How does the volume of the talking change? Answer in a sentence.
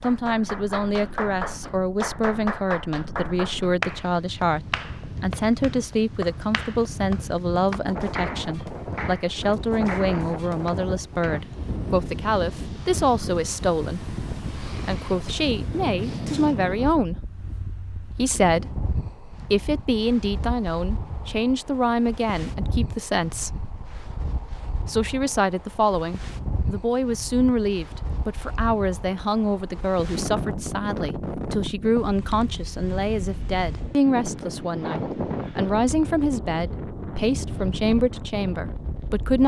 The loudness of the talking stays about the same.